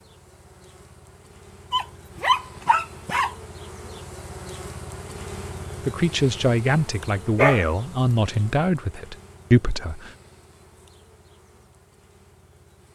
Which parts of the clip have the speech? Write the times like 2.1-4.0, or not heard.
5.8-10.1.